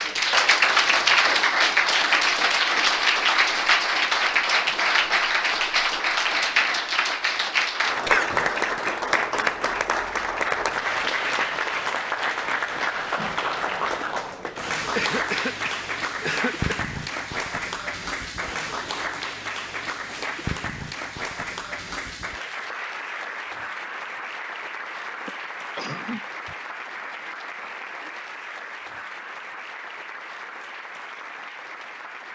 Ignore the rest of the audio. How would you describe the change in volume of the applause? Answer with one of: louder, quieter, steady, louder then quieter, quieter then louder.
quieter.